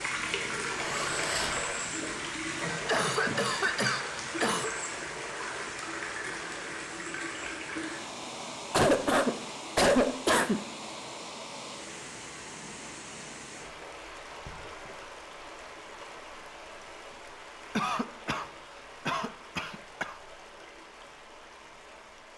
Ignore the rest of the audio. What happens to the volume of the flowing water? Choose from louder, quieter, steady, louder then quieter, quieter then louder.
quieter.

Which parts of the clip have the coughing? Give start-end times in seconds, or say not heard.
2.9-4.7, 8.7-10.6, 17.8-18.4, 19.1-20.1.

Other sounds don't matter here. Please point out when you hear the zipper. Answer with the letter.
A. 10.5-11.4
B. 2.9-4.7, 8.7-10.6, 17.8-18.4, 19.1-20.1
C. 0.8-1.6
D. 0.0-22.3
C.